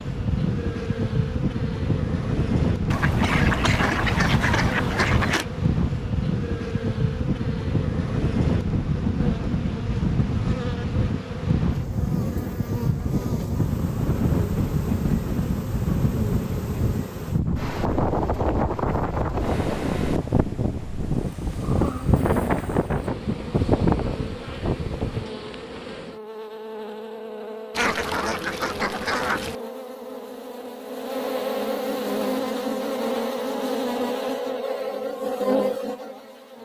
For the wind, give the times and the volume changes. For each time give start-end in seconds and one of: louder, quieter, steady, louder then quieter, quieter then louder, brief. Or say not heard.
0.0-25.2 steady.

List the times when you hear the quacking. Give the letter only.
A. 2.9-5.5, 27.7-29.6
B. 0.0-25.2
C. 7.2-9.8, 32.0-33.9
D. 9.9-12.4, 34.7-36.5
A.